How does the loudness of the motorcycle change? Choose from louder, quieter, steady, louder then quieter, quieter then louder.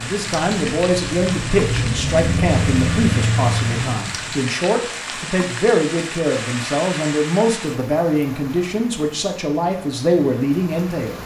louder.